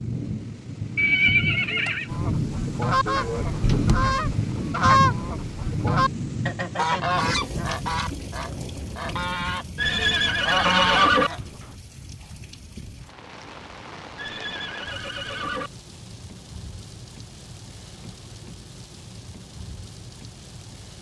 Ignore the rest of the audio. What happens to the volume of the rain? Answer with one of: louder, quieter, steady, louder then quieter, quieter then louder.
quieter.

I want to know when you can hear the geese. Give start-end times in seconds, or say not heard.
2.1-9.7, 10.2-11.5.